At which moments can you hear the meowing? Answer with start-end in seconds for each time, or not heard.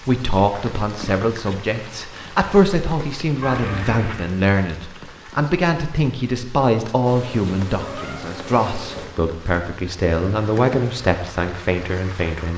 3.4-4.3, 7.0-9.1.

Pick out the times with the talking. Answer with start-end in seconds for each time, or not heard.
0.0-12.5.